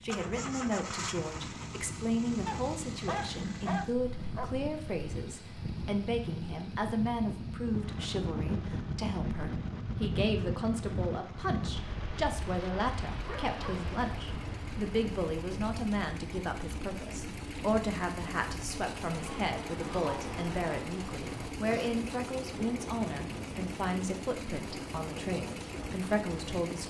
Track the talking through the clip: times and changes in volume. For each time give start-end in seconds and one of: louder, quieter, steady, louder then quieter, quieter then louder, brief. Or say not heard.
0.0-26.8 steady.